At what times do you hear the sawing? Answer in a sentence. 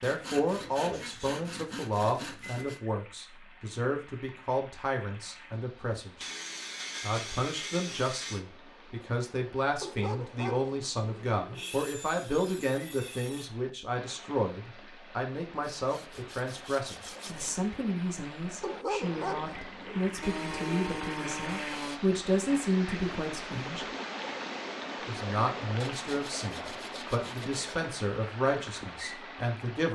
The sawing can be heard from 0.0 to 2.8 s, from 6.2 to 8.4 s, from 11.5 to 13.4 s, from 15.8 to 17.6 s, from 20.2 to 22.0 s and from 25.8 to 27.8 s.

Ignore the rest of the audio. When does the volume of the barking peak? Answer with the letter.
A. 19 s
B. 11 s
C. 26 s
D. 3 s
A.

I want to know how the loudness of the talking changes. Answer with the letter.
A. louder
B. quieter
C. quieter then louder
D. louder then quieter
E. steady
E.